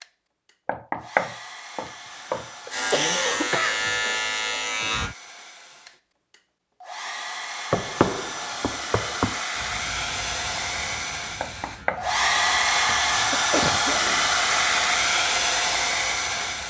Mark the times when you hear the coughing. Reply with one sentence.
The coughing can be heard from 2.1 to 3.8 s and from 13.1 to 14.3 s.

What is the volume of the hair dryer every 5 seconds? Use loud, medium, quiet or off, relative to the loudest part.
quiet, medium, loud, loud.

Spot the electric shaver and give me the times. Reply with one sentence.
You can hear the electric shaver from 2.7 to 5.2 s and from 9.6 to 16.6 s.